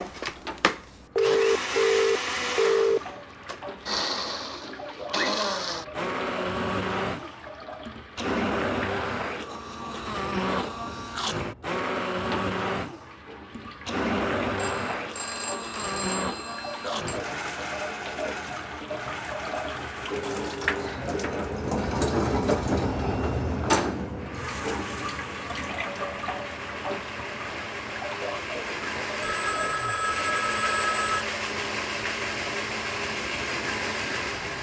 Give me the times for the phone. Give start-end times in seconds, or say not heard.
1.1-3.0, 14.6-17.2, 29.2-31.2.